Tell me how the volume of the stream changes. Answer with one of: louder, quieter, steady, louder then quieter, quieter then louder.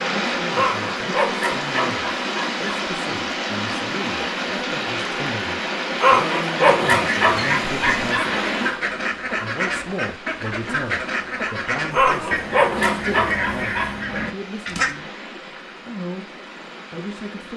quieter.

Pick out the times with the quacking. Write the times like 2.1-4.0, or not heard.
6.8-14.9.